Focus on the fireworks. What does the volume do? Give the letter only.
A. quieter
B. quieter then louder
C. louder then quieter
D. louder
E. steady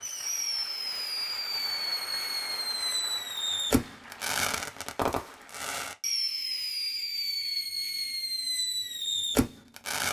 E.